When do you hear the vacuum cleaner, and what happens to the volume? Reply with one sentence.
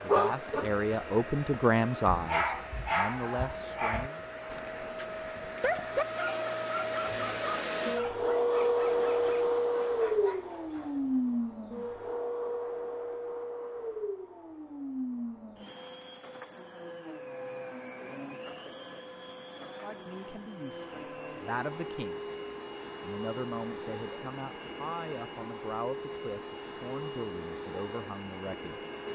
The vacuum cleaner can be heard from 0.0 to 29.1 s, getting louder then quieter.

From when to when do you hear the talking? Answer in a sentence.
The talking can be heard from 0.0 to 4.2 s, from 19.8 to 22.2 s and from 23.0 to 28.8 s.